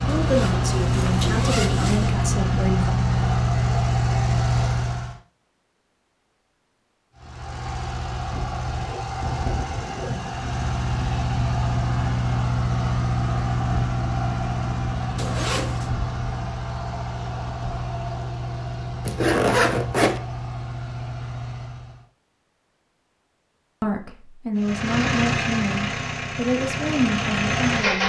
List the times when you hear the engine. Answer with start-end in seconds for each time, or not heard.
0.0-5.2, 7.2-22.1, 24.6-28.0.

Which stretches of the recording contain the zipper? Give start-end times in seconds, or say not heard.
0.1-2.1, 15.2-15.9, 19.1-20.2.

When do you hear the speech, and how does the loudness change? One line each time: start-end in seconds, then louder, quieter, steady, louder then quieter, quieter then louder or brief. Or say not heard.
0.1-3.0 brief
23.8-28.0 steady.